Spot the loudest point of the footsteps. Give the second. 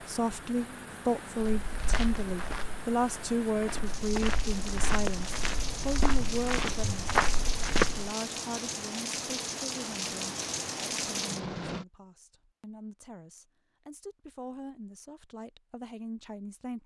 8 s.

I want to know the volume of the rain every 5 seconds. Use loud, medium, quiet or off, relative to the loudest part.
medium, loud, loud, off.